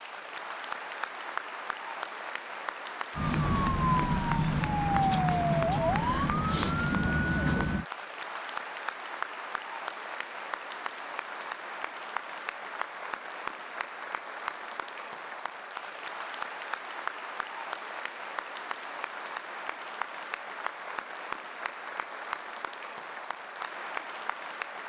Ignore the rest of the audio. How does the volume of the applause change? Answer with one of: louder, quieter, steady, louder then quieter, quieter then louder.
steady.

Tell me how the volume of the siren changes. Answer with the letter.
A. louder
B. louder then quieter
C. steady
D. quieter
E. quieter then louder
C.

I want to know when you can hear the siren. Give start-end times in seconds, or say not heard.
3.1-7.8.